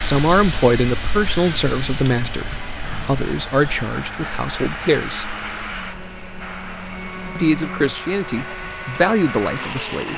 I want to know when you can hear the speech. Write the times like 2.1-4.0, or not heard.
0.1-5.3, 7.3-10.1.